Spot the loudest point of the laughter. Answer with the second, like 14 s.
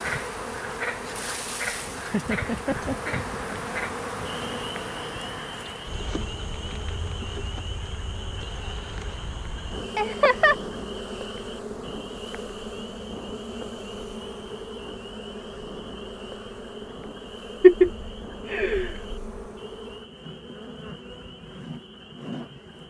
18 s.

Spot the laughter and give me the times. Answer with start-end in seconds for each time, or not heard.
2.1-3.5, 9.9-10.6, 17.6-19.1.